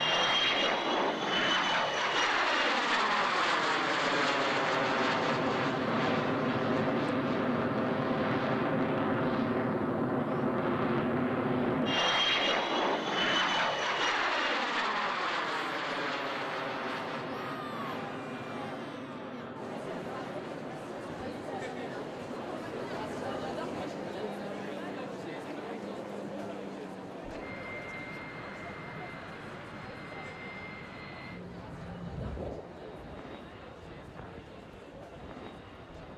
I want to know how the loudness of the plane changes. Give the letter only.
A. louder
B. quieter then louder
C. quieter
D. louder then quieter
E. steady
C.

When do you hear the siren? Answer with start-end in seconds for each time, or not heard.
not heard.